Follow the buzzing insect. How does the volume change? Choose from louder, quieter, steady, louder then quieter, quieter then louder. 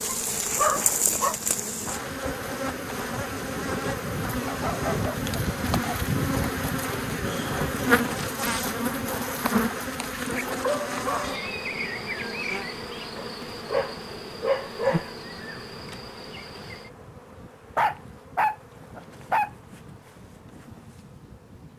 quieter.